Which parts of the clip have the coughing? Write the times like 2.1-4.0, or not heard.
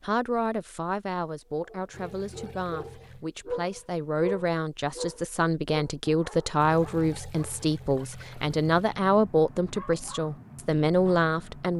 not heard.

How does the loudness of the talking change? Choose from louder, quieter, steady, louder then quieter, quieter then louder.
louder.